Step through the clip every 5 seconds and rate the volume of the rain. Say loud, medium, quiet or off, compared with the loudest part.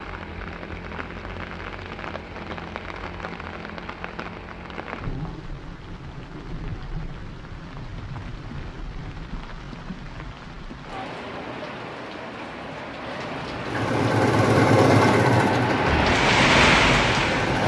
quiet, quiet, quiet, loud.